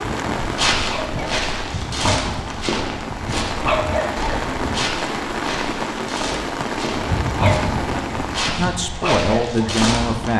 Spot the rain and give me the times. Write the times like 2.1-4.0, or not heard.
0.0-8.6.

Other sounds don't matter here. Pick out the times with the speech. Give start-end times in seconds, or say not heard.
8.4-10.3.